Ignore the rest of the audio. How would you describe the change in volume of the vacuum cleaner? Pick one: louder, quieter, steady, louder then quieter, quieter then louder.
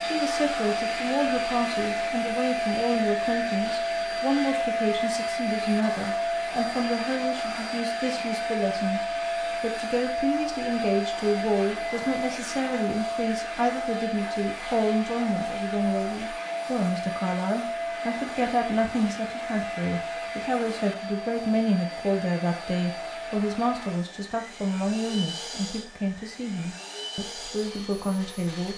quieter.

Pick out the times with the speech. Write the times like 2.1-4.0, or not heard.
0.0-9.0, 9.6-28.7.